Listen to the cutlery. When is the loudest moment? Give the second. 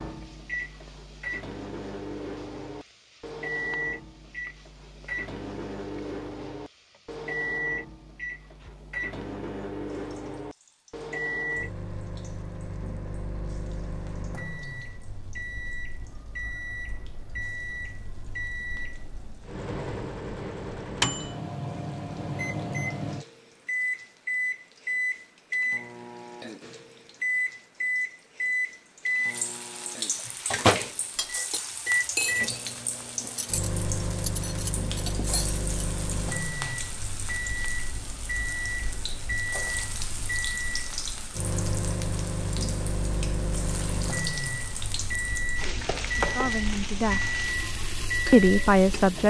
32 s.